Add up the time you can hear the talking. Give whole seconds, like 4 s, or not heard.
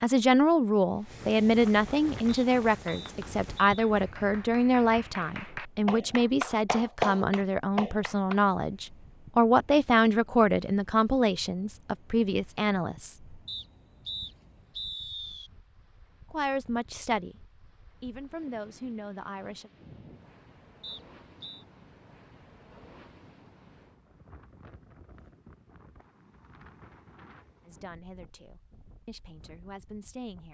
19 s.